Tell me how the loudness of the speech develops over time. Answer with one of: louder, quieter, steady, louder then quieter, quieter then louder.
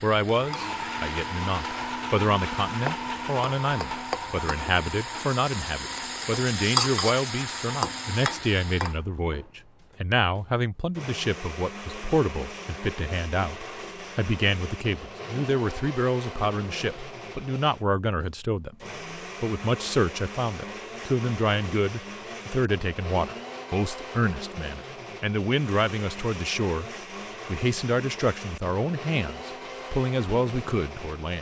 steady.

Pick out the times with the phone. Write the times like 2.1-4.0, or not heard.
not heard.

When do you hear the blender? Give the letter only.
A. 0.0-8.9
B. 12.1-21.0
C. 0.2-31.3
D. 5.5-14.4
C.